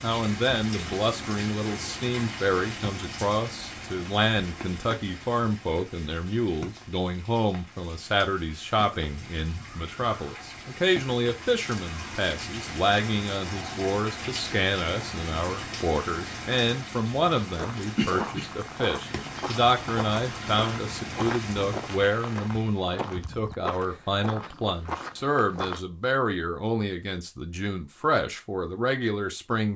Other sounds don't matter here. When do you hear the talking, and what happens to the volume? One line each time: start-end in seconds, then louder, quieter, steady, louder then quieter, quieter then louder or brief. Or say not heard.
0.0-29.7 steady.